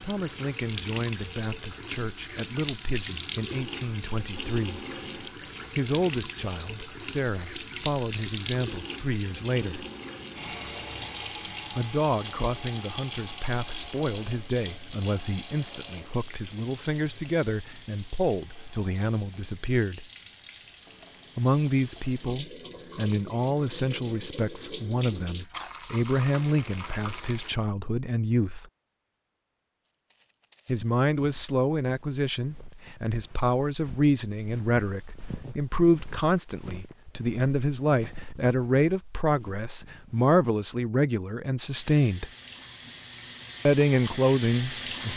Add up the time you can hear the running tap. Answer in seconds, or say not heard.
31 s.